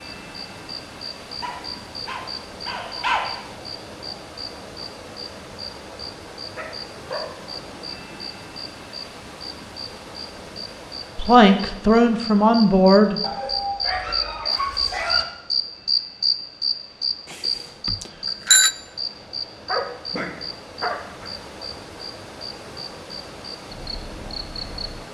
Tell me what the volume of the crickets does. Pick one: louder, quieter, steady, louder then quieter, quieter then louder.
louder then quieter.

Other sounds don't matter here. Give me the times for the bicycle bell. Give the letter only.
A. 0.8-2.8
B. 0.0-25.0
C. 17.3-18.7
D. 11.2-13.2
C.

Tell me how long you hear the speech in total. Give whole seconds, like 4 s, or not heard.
2 s.